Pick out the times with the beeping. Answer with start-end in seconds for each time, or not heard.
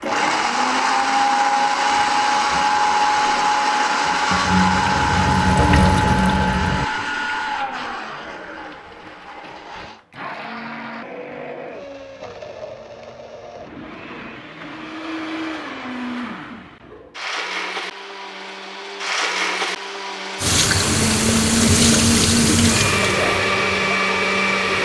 not heard.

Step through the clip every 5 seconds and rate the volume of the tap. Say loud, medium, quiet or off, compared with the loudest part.
medium, loud, off, off, loud.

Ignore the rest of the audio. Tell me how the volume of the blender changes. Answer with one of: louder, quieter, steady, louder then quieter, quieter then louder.
quieter then louder.